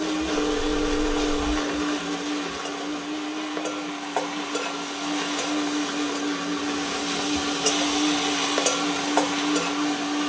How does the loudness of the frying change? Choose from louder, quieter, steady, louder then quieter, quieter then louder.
louder.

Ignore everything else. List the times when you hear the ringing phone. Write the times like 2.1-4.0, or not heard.
0.3-1.6.